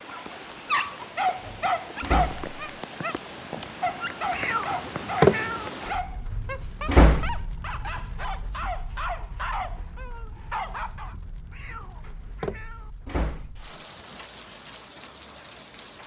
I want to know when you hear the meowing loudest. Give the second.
5 s.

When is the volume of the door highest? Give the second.
7 s.